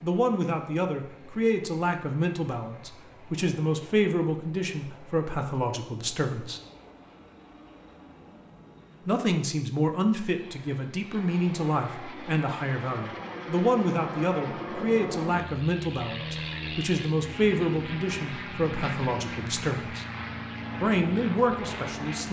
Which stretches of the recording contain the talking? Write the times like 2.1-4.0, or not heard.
0.0-6.6, 9.1-20.1, 20.8-22.2.